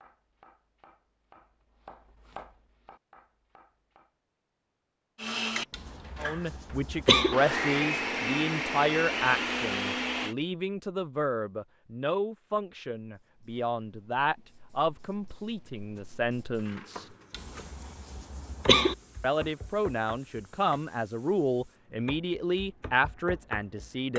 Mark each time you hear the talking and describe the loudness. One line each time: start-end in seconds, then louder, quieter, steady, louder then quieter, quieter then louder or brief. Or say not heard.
6.2-17.1 steady
19.2-24.1 steady.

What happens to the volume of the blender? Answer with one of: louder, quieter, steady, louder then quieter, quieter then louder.
quieter then louder.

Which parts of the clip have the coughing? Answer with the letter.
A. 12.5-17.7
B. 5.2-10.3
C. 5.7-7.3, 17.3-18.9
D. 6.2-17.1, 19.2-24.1
C.